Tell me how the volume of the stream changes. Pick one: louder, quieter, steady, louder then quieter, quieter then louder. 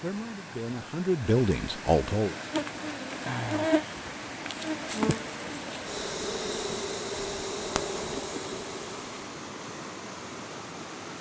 steady.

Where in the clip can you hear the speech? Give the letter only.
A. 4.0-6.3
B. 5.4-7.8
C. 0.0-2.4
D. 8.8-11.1
C.